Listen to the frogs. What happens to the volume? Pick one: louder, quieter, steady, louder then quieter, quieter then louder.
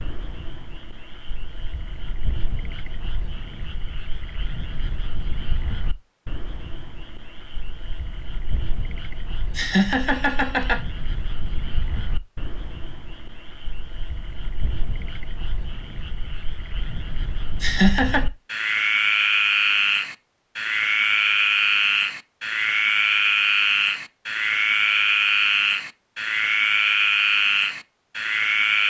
louder.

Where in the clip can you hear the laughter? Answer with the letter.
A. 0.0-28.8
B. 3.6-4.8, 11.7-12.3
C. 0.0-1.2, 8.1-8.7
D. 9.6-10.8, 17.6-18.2
D.